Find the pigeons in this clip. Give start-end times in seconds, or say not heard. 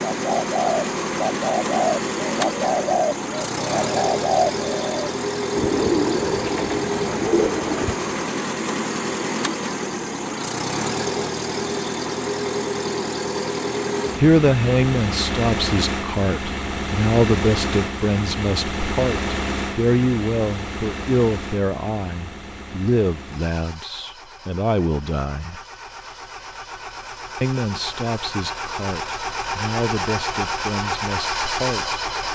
0.0-8.1.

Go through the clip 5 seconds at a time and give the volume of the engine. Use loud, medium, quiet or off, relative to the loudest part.
loud, loud, loud, loud, medium, medium, loud.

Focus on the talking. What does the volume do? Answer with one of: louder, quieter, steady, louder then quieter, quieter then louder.
quieter.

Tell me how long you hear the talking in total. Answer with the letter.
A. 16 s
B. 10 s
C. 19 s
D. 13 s
A.